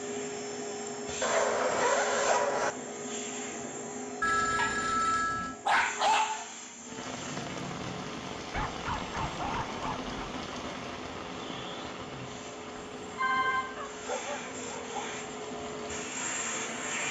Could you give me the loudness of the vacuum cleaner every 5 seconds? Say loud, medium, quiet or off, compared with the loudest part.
loud, medium, medium, loud.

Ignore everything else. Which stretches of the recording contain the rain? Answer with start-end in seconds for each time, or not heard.
6.8-17.0.